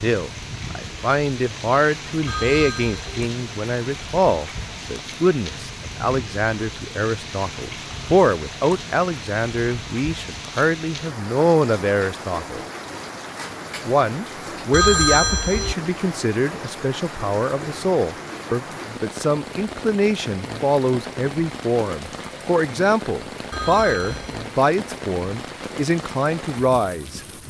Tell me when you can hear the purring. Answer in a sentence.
The purring can't be heard in this clip.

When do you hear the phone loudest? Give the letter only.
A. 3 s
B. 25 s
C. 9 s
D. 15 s
D.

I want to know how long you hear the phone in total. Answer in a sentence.
You can hear the phone for 3 seconds altogether.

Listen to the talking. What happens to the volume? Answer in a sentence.
The loudness of the talking stays about the same.